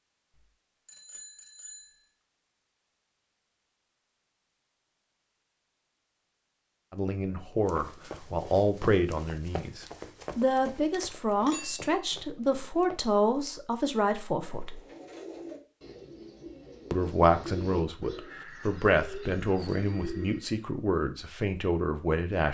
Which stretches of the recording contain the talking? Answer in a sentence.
The talking can be heard from 6.9 to 14.8 s and from 16.9 to 22.4 s.